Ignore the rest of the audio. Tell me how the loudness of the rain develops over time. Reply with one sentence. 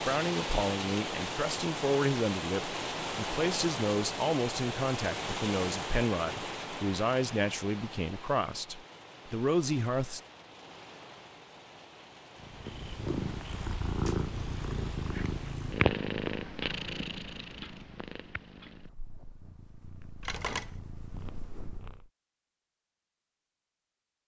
The volume of the rain goes down.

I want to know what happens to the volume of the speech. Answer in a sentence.
The loudness of the speech stays about the same.